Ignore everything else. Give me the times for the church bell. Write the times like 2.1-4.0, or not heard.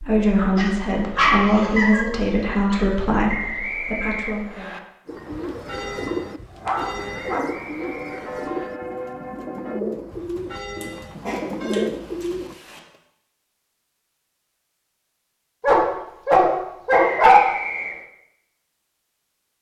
5.3-11.9.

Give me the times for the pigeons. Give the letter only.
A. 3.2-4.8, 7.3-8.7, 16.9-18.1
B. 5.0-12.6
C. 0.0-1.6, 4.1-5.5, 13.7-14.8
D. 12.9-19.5
B.